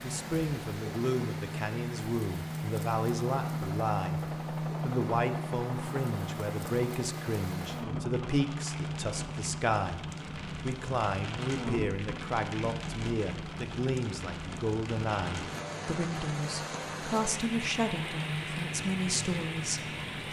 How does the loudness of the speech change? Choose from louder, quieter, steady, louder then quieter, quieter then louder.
steady.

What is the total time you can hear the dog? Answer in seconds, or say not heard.
not heard.